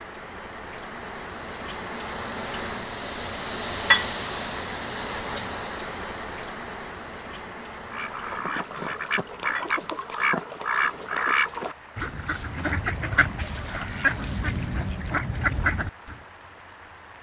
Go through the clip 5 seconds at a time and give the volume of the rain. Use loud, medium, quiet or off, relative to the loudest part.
loud, medium, quiet, quiet.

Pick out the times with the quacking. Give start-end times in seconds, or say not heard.
7.7-16.2.